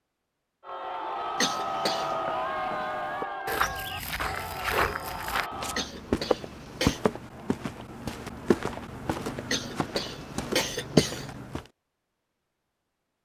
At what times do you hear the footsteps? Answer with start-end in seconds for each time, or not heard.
2.0-11.7.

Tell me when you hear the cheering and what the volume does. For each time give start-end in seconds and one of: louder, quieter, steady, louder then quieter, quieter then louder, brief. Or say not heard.
0.6-5.9 quieter.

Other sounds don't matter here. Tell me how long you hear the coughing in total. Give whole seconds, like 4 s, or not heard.
4 s.